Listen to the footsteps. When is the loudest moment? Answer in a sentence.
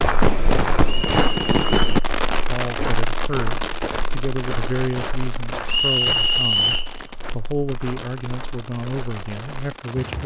The volume of the footsteps peaks at 1 second.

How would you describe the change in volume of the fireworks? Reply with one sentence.
The loudness of the fireworks goes down.